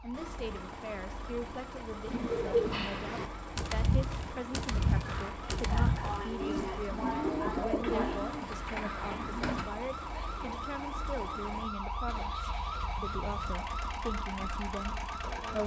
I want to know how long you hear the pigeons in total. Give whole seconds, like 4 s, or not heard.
8 s.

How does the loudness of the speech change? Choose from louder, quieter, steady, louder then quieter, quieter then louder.
steady.